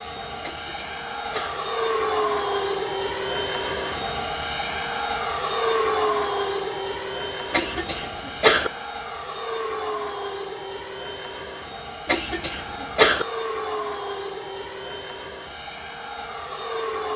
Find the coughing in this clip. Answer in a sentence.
You can hear the coughing from 0.4 to 1.6 s, from 7.5 to 8.7 s and from 12.1 to 13.2 s.